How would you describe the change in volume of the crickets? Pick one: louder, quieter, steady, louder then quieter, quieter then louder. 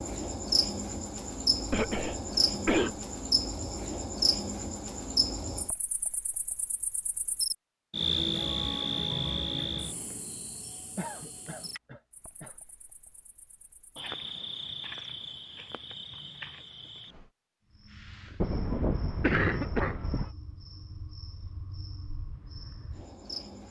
quieter.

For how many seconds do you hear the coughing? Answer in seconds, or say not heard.
5 s.